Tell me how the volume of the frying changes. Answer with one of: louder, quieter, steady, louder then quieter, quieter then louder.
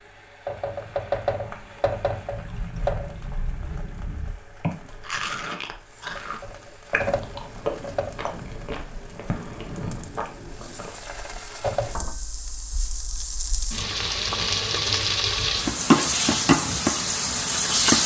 quieter then louder.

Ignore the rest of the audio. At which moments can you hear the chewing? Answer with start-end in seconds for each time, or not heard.
2.3-11.0.